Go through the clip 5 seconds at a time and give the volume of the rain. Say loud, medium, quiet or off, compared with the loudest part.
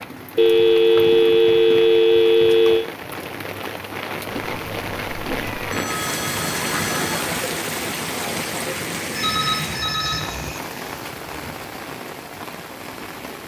medium, loud, medium.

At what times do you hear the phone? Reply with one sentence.
The phone can be heard from 0.3 to 2.9 s, from 5.7 to 7.2 s and from 9.1 to 10.6 s.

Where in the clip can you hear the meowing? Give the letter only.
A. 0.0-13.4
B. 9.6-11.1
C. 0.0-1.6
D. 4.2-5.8
D.